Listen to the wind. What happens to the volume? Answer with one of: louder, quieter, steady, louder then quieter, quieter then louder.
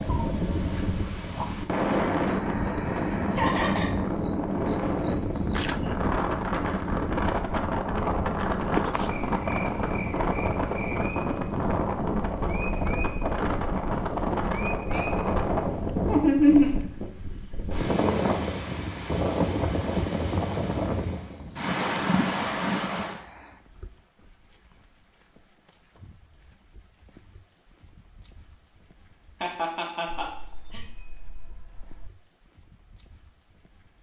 steady.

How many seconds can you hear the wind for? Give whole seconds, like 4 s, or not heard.
23 s.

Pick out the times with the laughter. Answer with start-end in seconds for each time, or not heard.
3.4-3.9, 16.1-16.8, 29.4-30.8.